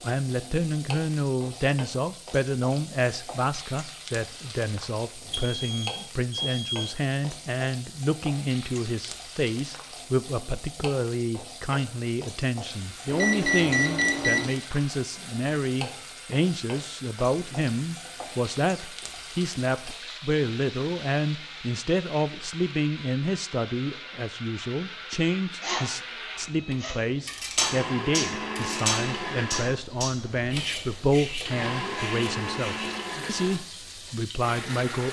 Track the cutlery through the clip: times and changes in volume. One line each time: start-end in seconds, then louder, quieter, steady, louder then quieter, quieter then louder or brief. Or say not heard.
27.2-32.9 quieter.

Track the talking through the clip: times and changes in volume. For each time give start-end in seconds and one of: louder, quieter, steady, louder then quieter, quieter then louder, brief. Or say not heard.
0.0-35.0 steady.